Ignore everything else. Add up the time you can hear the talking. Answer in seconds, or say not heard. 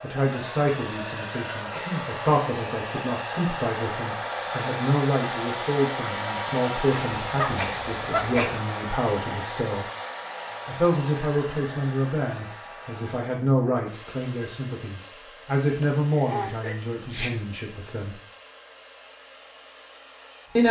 17 s.